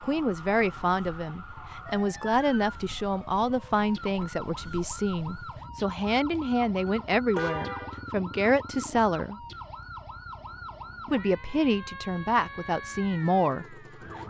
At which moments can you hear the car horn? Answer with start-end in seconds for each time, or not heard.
6.3-8.1.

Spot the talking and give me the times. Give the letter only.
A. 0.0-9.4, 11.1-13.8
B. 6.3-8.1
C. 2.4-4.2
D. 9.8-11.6
A.